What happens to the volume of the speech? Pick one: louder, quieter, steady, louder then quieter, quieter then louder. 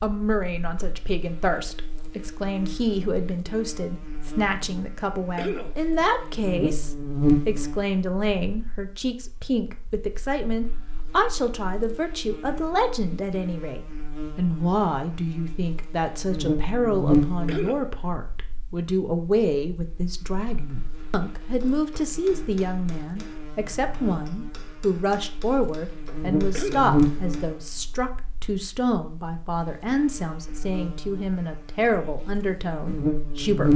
steady.